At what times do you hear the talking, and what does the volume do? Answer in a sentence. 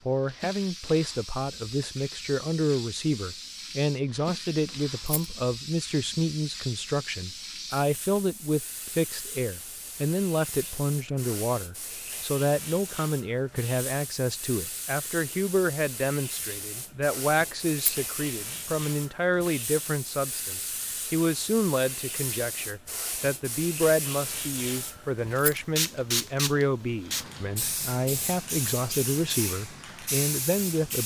You can hear the talking from 0.1 to 31.0 s, at a steady volume.